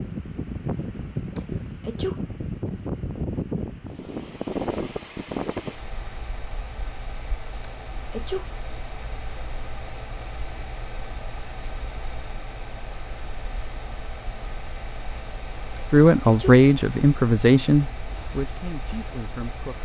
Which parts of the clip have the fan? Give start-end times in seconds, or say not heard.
0.0-19.7.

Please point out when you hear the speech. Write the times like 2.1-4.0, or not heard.
15.9-19.7.